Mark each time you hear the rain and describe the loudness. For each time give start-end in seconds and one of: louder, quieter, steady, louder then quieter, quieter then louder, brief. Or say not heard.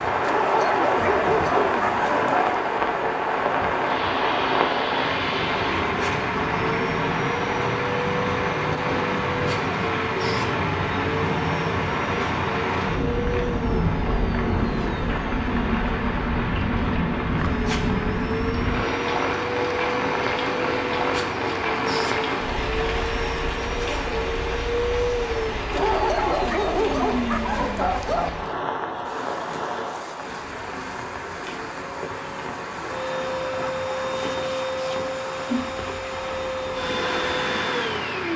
0.0-38.3 quieter.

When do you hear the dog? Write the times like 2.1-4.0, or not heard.
0.2-2.6, 25.7-28.3.